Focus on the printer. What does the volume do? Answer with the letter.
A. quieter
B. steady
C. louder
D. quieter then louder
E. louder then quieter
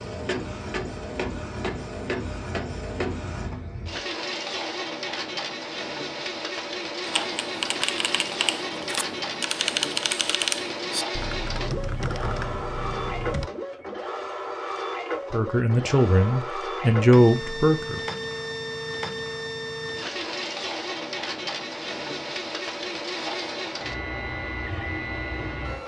B.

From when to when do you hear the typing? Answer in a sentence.
You can hear the typing from 7.0 to 13.5 s.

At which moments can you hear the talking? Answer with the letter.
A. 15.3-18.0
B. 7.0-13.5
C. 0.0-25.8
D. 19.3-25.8
A.